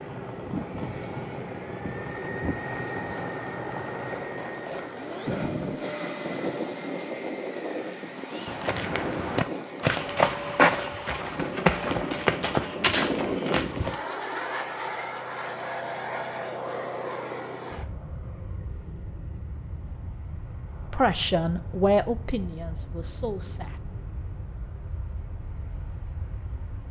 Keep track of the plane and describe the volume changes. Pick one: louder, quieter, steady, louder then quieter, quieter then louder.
quieter.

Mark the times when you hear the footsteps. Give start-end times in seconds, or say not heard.
8.4-13.9.